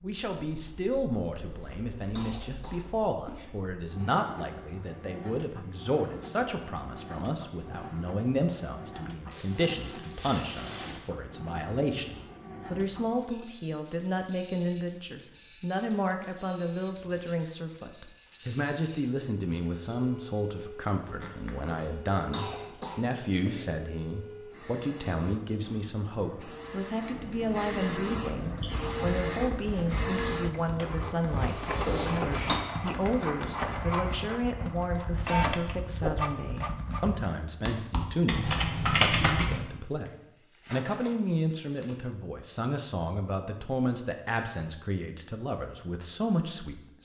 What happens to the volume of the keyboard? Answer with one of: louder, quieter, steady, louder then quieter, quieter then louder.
louder.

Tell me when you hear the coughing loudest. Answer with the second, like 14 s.
32 s.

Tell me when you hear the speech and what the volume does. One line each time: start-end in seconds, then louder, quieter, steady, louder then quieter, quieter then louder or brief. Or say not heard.
0.0-47.0 steady.